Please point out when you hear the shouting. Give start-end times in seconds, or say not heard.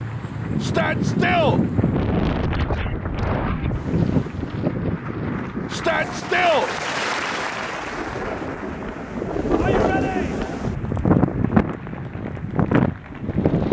0.6-1.6, 5.7-6.7, 9.6-10.6.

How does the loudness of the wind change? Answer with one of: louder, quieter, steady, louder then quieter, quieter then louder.
quieter then louder.